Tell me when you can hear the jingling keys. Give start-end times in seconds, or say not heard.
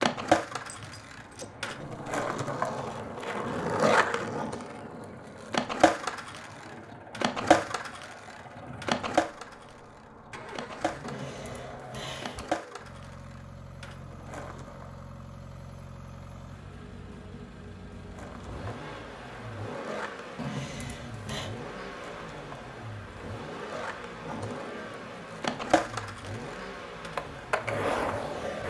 0.7-1.8, 11.0-12.5, 20.4-21.5.